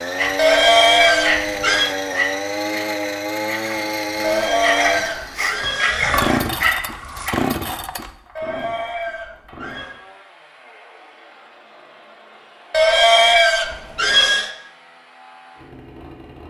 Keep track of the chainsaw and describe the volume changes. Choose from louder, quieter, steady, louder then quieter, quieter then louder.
quieter.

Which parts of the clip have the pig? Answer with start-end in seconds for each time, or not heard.
0.3-1.9, 4.2-6.3, 8.3-9.9, 12.7-14.5.